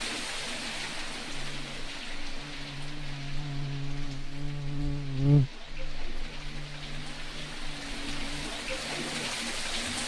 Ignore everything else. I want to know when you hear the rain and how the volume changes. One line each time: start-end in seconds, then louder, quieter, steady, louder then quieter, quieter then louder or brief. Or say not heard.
0.0-10.0 quieter then louder.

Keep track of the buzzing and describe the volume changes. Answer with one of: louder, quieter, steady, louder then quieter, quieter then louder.
louder then quieter.